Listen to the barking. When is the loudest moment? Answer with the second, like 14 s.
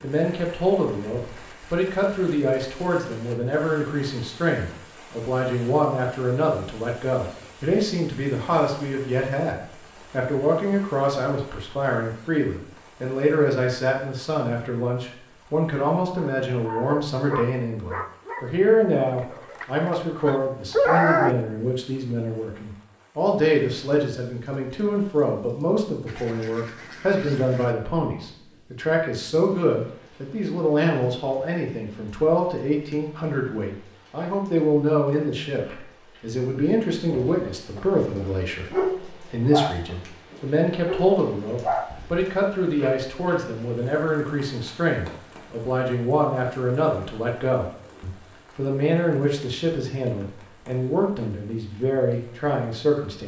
21 s.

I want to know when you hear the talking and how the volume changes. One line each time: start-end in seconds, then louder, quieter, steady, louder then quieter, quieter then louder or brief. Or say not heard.
0.0-53.2 steady.